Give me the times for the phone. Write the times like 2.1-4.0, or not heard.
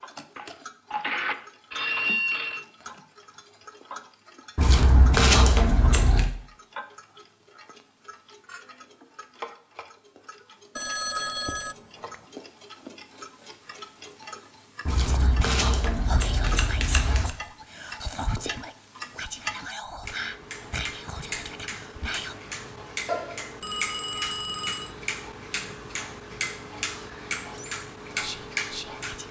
0.3-2.6, 10.8-12.2, 23.1-24.9.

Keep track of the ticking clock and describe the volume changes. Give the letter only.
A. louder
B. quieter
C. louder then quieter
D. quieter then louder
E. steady
A.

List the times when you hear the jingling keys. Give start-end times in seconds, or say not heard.
not heard.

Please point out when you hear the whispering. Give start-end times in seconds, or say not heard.
15.0-22.4, 26.9-29.2.